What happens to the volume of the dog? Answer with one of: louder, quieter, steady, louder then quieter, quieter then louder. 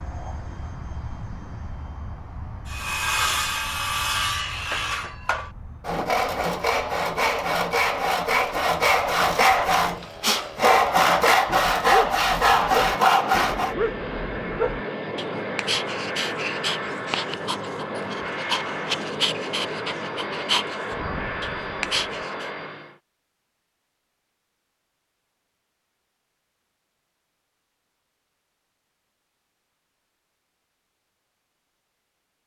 steady.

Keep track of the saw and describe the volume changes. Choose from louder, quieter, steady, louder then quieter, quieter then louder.
louder.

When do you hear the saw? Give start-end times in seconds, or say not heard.
2.6-13.8.